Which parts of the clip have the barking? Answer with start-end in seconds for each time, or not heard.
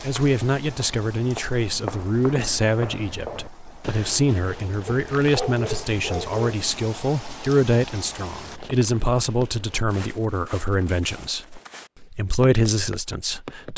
4.8-6.7.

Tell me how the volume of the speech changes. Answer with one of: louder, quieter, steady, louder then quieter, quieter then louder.
steady.